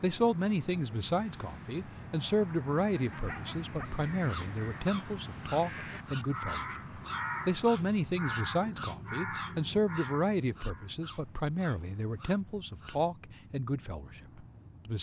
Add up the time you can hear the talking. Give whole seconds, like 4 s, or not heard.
15 s.